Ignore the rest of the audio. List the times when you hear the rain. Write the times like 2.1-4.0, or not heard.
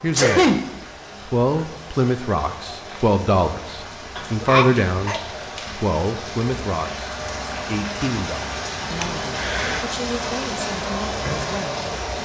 0.0-12.2.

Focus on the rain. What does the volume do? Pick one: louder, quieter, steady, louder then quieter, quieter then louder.
louder.